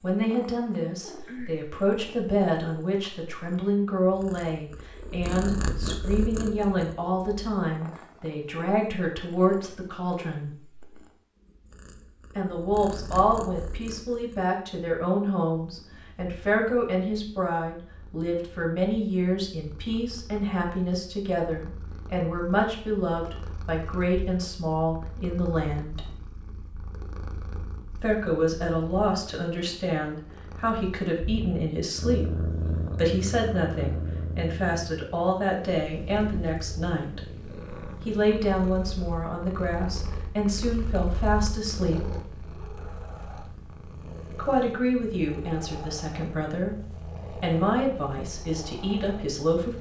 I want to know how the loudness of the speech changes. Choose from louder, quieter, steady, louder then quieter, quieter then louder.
steady.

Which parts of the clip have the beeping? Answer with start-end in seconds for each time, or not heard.
not heard.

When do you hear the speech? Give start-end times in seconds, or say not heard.
0.0-10.5, 12.3-26.1, 27.9-37.2, 38.0-42.0, 44.4-49.7.